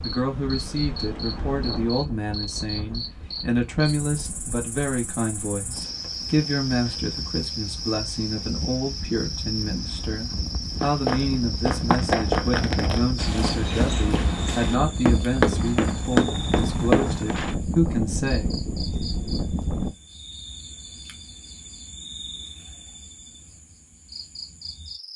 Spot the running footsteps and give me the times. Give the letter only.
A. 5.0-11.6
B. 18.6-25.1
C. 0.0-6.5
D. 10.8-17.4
D.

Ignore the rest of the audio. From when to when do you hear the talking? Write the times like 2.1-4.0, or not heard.
0.0-18.6.